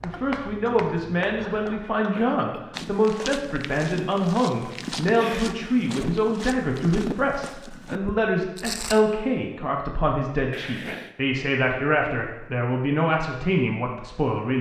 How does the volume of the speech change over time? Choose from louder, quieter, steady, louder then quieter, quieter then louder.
steady.